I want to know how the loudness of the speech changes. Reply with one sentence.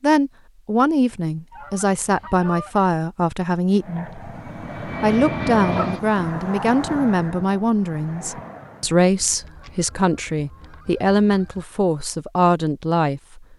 The volume of the speech stays about the same.